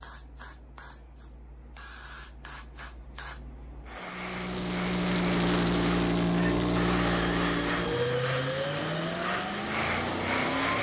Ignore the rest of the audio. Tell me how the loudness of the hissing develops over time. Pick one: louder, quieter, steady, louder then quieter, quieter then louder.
louder.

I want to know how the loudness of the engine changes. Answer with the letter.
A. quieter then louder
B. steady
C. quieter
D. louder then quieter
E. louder
C.